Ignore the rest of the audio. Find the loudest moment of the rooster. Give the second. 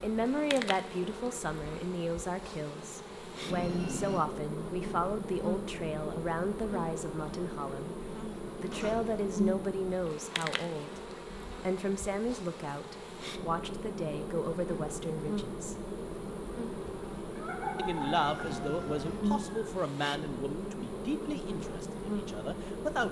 18 s.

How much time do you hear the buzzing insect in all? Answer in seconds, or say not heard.
23 s.